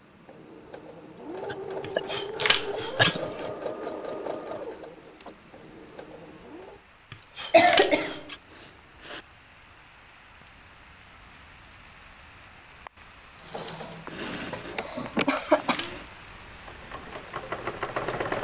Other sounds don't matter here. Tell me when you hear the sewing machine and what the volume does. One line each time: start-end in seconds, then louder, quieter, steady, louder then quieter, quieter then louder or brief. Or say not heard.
0.0-6.8 louder then quieter
13.4-18.3 quieter then louder.